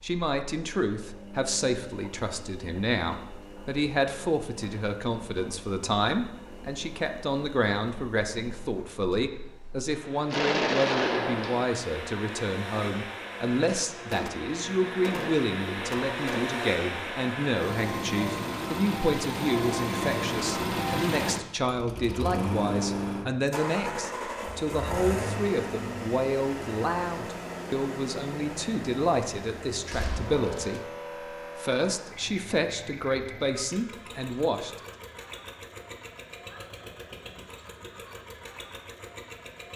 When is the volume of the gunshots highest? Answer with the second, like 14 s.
11 s.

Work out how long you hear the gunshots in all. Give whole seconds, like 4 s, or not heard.
5 s.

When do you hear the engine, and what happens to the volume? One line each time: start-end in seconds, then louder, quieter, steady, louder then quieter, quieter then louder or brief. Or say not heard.
0.0-39.7 louder then quieter.